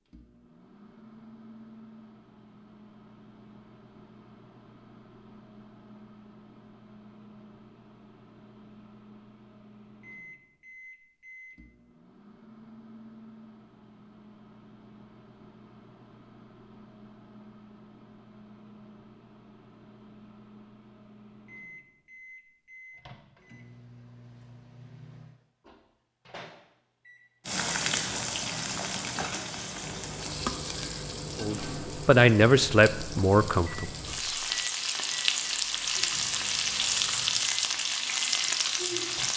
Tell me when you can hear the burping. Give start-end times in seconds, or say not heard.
not heard.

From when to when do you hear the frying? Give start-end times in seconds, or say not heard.
27.4-39.3.